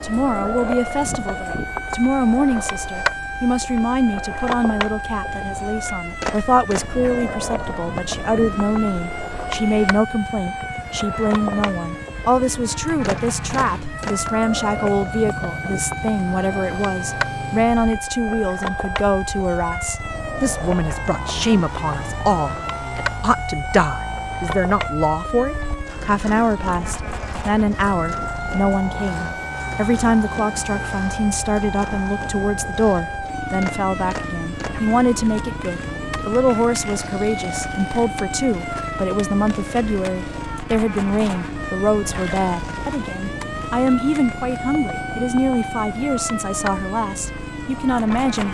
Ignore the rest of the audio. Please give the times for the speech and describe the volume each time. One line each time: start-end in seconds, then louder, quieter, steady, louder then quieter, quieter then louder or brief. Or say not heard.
0.0-48.5 steady.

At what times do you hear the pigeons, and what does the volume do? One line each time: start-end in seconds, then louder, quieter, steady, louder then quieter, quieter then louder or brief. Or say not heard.
not heard.